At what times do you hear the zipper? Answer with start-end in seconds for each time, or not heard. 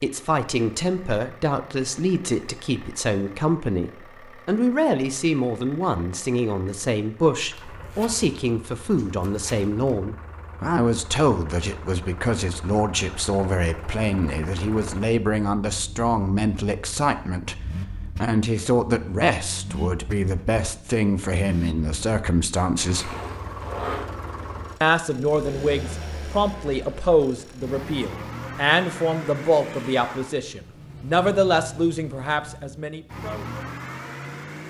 7.5-9.9, 22.9-24.1.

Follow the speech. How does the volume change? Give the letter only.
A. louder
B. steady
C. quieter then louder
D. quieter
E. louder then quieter
B.